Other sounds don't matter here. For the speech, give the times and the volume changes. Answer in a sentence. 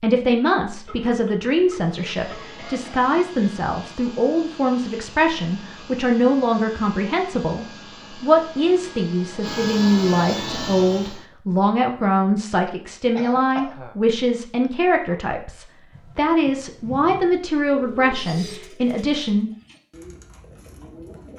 You can hear the speech from 0.0 to 19.5 s, at a steady volume.